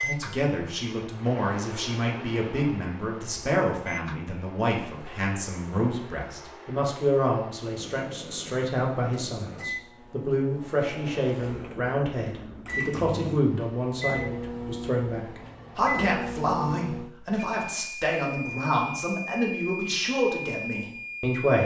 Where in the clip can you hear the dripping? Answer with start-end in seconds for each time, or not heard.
not heard.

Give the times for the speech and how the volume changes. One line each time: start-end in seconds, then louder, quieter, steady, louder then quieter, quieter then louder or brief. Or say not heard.
0.0-21.6 steady.